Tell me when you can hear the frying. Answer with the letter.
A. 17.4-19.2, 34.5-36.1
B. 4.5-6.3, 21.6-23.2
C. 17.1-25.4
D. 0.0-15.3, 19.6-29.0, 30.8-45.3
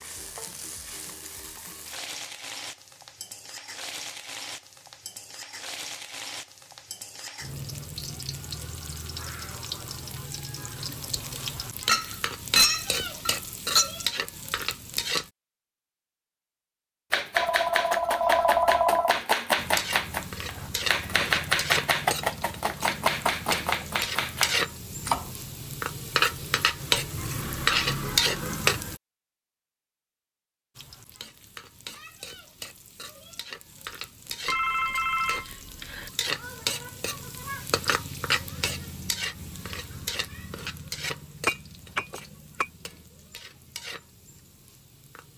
D.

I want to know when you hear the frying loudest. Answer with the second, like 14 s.
28 s.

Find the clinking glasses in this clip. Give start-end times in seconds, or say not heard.
11.8-13.9, 41.5-42.6.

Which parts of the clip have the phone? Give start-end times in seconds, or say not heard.
17.4-19.2, 34.5-36.1.